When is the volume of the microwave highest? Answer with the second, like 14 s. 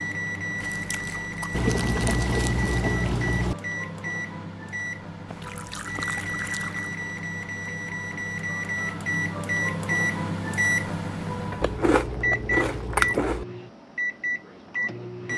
10 s.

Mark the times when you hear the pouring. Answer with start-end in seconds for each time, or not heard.
1.5-3.5, 5.4-6.9, 11.2-13.1.